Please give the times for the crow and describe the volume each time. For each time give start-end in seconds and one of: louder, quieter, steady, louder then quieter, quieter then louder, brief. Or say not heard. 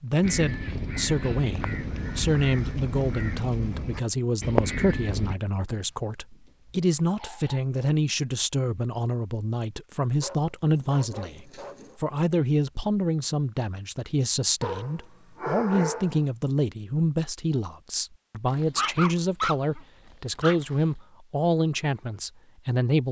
0.2-5.3 louder.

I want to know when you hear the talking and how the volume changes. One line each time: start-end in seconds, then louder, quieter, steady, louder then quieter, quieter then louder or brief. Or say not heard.
0.0-23.0 steady.